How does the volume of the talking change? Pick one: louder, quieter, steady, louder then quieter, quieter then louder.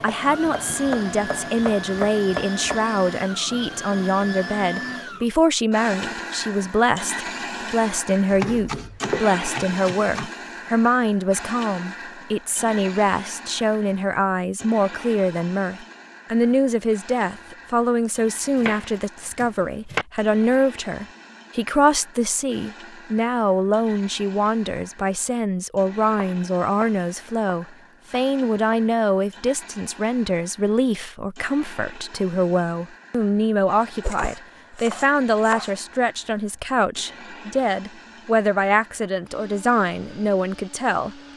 steady.